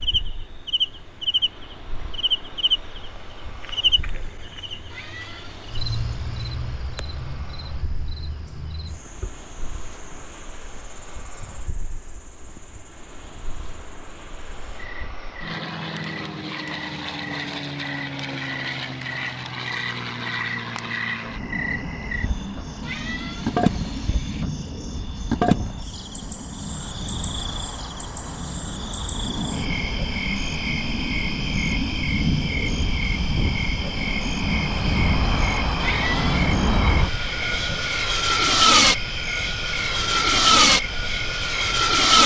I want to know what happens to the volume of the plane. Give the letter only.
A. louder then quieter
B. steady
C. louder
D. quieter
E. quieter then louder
C.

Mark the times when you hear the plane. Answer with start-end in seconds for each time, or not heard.
0.0-42.2.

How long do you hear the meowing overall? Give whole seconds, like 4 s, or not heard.
4 s.